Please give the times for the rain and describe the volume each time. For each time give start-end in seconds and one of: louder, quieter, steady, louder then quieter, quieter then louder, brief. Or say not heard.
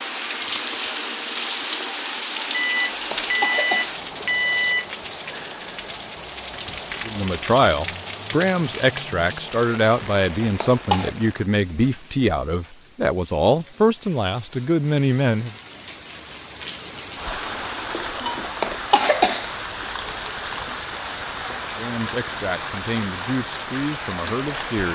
0.0-24.9 quieter then louder.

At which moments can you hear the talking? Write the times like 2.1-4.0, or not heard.
7.0-15.6, 21.8-24.9.